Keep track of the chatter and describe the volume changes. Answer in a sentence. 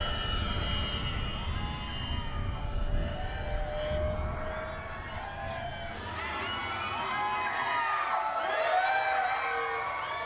The loudness of the chatter goes up.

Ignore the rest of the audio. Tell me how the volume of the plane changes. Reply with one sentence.
The volume of the plane goes down.